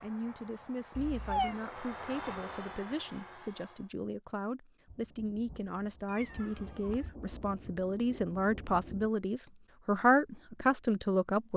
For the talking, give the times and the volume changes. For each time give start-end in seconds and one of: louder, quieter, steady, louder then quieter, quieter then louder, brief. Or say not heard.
0.0-11.5 louder.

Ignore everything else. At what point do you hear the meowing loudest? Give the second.
1 s.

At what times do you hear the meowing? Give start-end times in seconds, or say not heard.
0.9-1.6, 6.0-7.1.